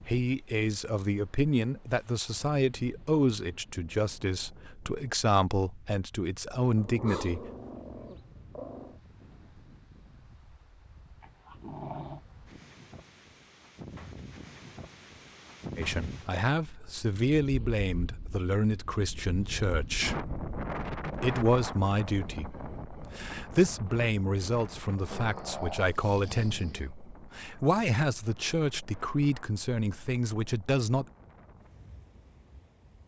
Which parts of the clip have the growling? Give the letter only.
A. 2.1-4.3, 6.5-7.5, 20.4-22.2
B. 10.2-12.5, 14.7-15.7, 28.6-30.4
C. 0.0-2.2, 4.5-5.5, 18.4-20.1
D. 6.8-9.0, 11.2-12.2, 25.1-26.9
D.